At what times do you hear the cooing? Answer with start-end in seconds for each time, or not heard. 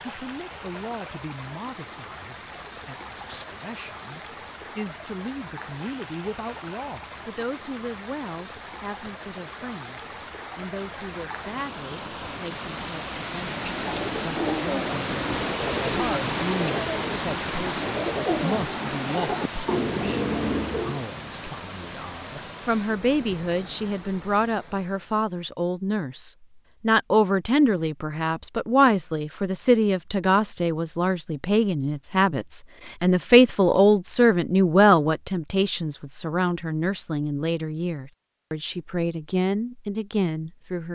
13.4-21.1.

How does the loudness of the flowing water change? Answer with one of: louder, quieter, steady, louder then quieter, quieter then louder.
louder then quieter.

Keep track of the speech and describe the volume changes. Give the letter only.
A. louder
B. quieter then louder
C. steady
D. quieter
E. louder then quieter
A.